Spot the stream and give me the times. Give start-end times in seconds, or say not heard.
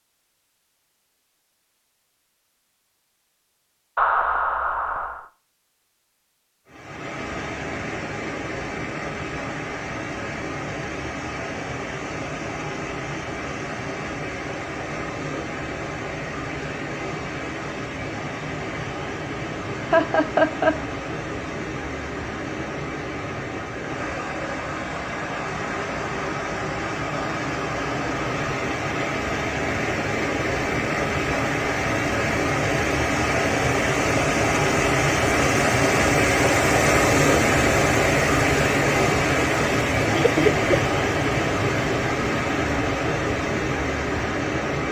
6.7-44.8.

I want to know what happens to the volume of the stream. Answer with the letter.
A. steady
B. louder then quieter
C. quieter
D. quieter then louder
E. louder
E.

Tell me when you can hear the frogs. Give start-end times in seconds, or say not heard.
not heard.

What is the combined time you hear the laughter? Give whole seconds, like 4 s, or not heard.
3 s.